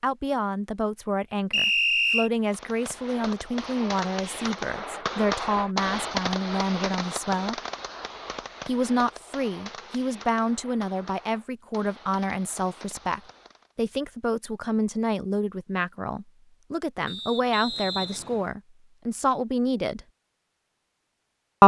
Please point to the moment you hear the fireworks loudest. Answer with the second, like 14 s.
6 s.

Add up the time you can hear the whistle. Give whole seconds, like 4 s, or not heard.
2 s.